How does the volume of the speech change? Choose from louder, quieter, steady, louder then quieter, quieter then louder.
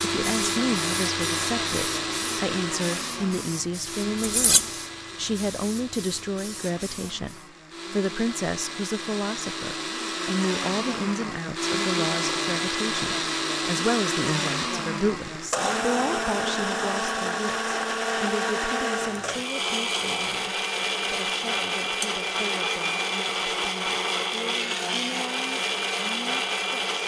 quieter.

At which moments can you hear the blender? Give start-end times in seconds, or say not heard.
0.0-27.0.